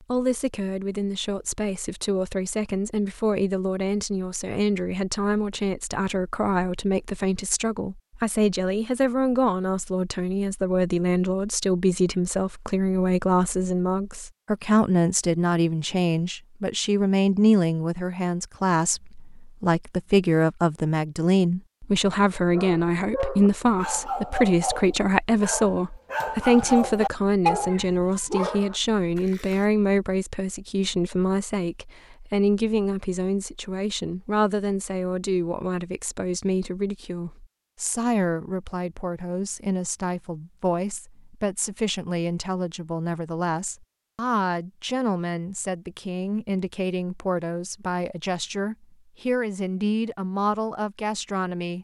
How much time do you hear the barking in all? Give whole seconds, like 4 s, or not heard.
7 s.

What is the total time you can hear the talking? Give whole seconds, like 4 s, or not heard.
52 s.